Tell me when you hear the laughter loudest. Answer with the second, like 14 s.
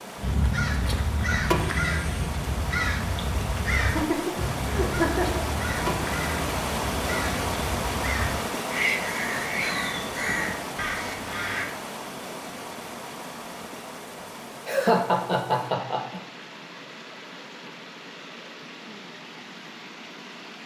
15 s.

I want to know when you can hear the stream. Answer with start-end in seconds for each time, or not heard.
0.0-20.6.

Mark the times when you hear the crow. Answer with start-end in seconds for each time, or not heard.
0.1-11.7.